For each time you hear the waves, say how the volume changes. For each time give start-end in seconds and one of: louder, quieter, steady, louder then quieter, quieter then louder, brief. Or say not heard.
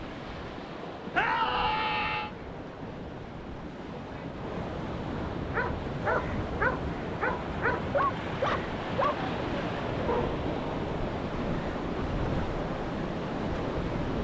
0.0-14.1 louder.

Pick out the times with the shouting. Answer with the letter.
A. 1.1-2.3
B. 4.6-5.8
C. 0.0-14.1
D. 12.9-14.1
A.